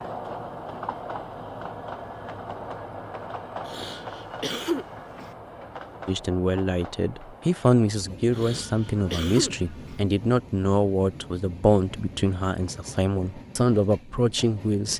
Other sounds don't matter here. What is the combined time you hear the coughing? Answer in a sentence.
You can hear the coughing for 3 seconds altogether.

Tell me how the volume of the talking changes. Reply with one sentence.
The loudness of the talking stays about the same.